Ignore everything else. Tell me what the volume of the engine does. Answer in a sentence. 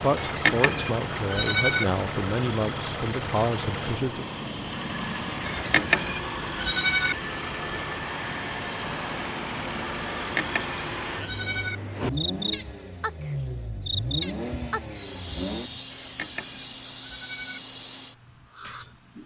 The volume of the engine stays about the same.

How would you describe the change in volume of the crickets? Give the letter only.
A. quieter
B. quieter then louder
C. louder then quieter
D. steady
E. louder
D.